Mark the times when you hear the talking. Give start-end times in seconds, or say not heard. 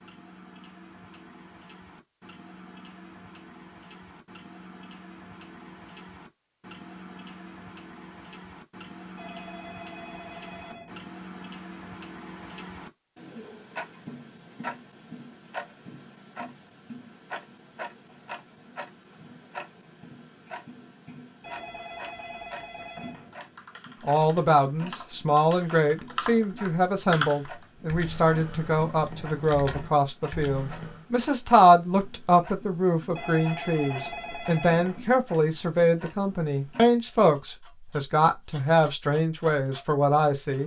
24.0-40.6.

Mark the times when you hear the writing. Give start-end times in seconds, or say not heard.
not heard.